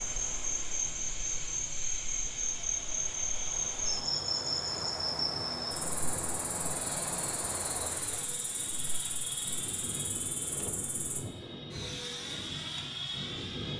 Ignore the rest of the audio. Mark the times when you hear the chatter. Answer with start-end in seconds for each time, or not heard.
not heard.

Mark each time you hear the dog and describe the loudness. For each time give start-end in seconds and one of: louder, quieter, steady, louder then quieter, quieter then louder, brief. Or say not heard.
not heard.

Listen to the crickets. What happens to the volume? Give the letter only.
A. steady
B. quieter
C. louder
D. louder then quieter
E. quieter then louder
B.